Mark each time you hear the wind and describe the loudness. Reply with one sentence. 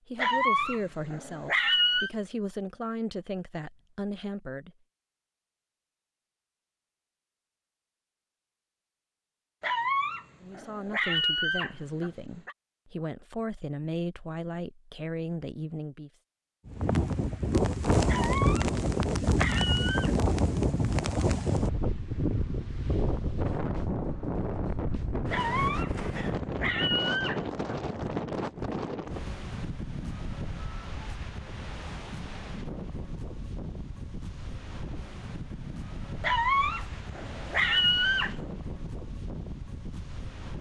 You can hear the wind from 16.6 to 40.5 s, getting quieter.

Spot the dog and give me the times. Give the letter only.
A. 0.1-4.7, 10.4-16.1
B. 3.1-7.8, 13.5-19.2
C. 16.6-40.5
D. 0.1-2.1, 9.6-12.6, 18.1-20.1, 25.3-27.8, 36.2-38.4
D.